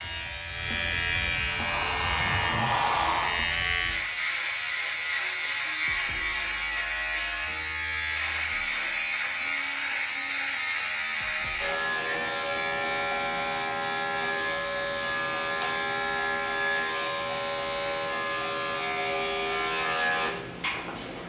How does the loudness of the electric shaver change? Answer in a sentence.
The loudness of the electric shaver stays about the same.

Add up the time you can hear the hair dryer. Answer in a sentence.
The hair dryer can be heard for 2 seconds in total.